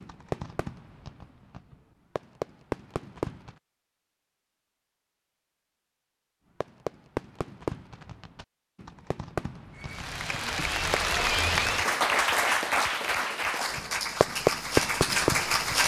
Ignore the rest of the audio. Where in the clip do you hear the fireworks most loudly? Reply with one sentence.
The loudest moment of the fireworks is at 15 seconds.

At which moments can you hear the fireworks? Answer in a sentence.
You can hear the fireworks from 0.0 to 3.5 s, from 6.6 to 11.2 s and from 13.8 to 15.8 s.